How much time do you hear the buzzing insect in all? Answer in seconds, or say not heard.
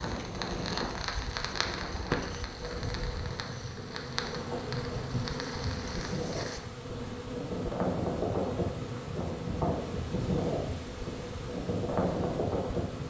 13 s.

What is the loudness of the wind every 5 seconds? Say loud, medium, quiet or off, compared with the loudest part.
medium, loud, loud.